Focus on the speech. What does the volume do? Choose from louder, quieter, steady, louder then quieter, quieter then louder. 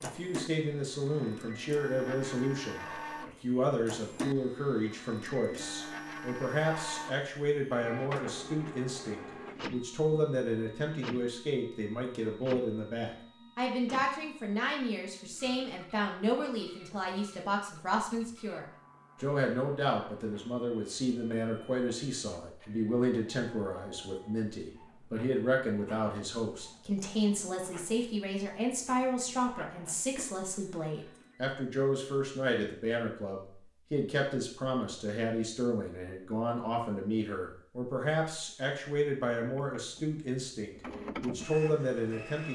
steady.